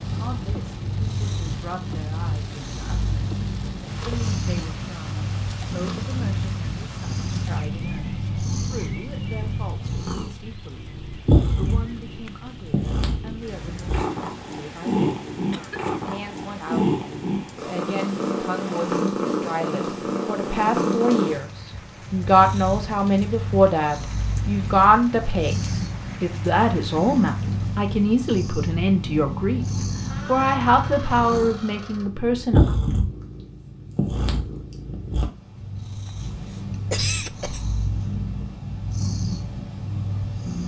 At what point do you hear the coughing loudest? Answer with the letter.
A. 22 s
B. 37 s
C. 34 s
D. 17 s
B.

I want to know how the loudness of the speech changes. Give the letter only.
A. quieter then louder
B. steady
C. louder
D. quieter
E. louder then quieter
C.